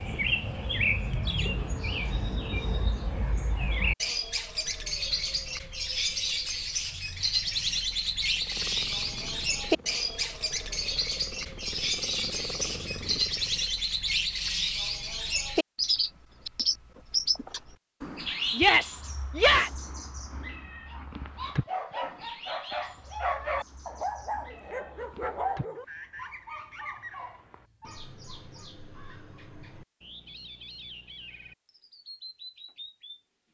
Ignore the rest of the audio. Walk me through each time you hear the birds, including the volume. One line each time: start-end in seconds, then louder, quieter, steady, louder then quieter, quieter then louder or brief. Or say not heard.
0.0-33.2 quieter.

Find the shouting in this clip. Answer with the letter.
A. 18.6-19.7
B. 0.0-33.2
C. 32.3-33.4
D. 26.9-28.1
A.